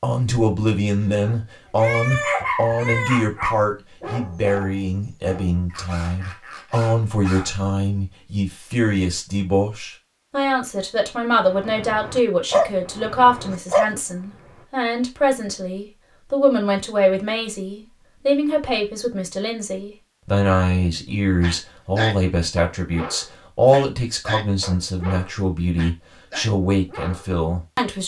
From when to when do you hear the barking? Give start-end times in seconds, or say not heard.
1.1-7.5, 11.4-14.7, 21.4-27.3.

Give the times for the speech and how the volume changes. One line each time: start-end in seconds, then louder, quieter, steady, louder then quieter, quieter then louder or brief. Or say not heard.
0.0-28.0 steady.